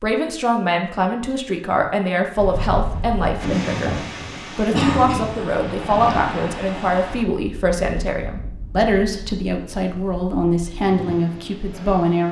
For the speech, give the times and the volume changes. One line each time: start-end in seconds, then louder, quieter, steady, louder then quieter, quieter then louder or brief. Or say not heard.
0.0-12.2 steady.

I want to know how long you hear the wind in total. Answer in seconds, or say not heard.
10 s.